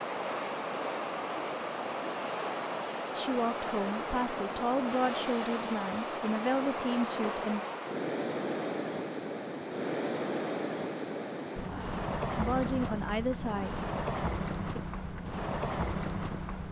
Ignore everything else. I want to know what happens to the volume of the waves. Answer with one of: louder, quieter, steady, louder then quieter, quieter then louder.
steady.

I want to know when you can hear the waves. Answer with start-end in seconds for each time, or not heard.
0.0-16.6.